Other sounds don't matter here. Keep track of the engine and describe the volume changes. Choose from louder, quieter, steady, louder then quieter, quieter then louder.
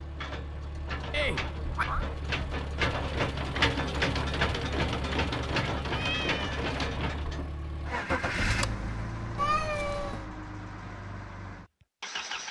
louder then quieter.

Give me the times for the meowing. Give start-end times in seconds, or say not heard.
1.1-2.0, 5.9-6.7, 9.3-10.3.